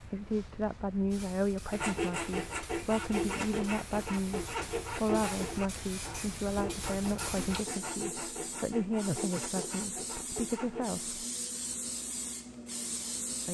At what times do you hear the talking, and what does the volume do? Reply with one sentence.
The talking can be heard from 0.0 to 11.2 s, at a steady volume.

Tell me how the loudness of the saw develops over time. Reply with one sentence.
The loudness of the saw goes down.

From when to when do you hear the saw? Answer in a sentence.
You can hear the saw from 1.7 to 10.9 s.